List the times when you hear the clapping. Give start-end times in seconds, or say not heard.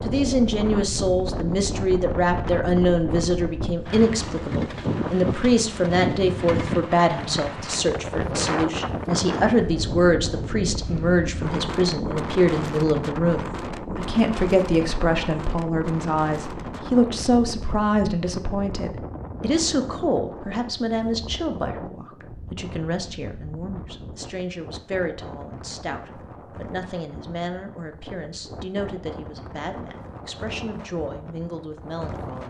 not heard.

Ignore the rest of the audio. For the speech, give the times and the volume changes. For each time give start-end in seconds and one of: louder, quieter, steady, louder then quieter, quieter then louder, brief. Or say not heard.
0.1-32.4 quieter.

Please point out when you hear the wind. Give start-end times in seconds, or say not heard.
0.0-32.4.